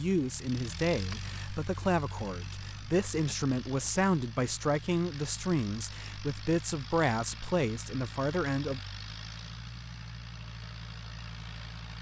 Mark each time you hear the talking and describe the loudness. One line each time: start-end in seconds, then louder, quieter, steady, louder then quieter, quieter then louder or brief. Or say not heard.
0.0-8.8 steady.